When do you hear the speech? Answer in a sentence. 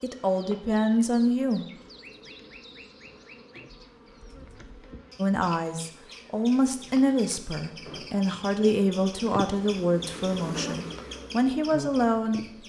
The speech can be heard from 0.0 to 1.6 s and from 5.2 to 12.4 s.